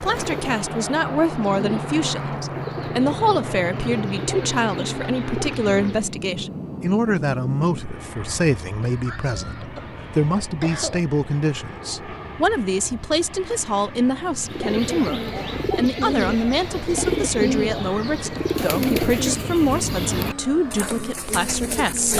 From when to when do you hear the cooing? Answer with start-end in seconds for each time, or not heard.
0.0-6.2, 14.4-22.1.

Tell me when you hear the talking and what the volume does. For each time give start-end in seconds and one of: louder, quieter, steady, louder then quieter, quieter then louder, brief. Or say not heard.
0.0-22.1 steady.